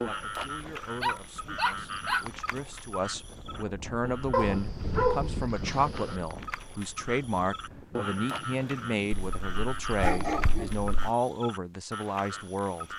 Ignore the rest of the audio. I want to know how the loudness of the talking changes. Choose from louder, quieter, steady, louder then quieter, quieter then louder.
louder.